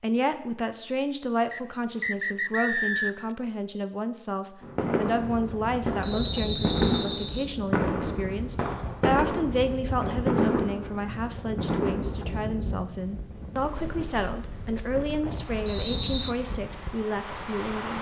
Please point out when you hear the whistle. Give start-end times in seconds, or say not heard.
1.5-3.3, 6.0-7.5, 15.7-16.4.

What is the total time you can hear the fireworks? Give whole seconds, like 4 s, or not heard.
8 s.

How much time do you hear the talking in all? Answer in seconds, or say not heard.
18 s.